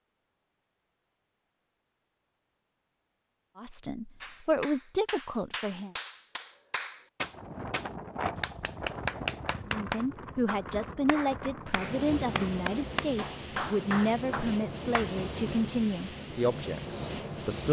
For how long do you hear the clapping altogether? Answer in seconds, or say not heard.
11 s.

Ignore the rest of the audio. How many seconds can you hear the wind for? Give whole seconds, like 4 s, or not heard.
10 s.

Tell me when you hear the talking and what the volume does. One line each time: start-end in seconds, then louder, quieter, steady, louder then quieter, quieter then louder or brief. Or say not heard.
3.5-6.0 brief
9.7-17.6 steady.